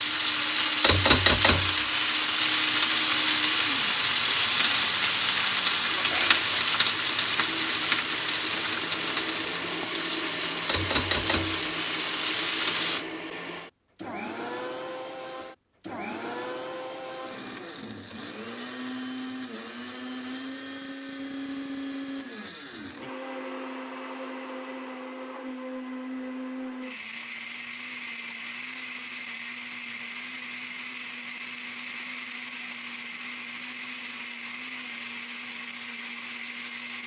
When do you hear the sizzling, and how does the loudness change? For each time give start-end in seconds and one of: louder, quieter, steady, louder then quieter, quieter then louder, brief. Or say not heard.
0.0-13.1 quieter.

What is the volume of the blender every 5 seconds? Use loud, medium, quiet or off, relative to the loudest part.
medium, loud, loud, loud, loud, loud, loud, loud.